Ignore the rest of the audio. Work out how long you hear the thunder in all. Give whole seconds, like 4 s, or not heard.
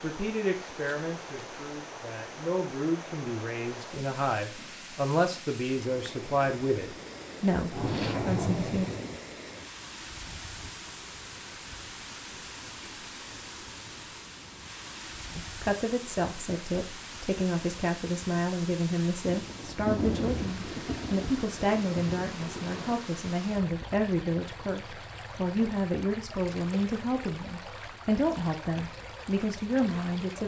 5 s.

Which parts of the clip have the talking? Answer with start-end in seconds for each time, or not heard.
0.0-8.9, 15.3-30.4.